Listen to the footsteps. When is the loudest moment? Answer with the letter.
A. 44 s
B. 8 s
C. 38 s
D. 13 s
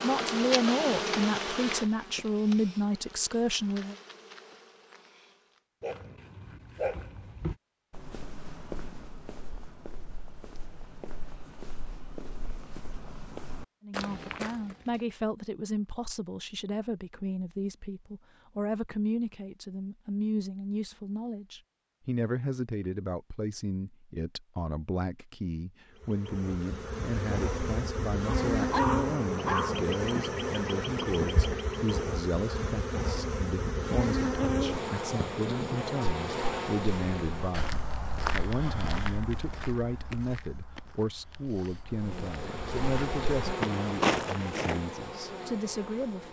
A.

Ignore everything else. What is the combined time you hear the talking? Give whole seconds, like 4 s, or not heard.
36 s.